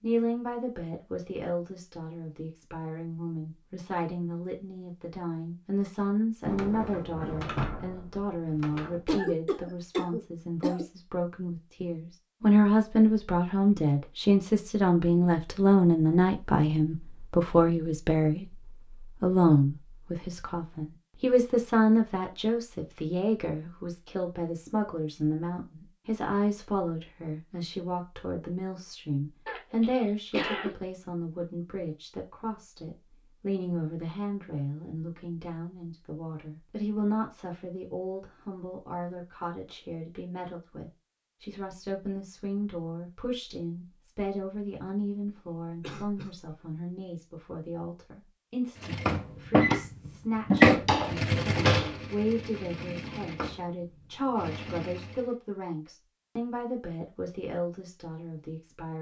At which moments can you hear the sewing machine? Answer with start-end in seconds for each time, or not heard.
48.8-55.3.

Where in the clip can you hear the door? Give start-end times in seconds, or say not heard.
6.4-9.1, 50.8-52.0.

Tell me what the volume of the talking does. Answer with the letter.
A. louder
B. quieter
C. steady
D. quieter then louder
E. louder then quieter
E.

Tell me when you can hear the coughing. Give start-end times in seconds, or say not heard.
9.1-10.8, 29.4-30.7, 45.8-46.5.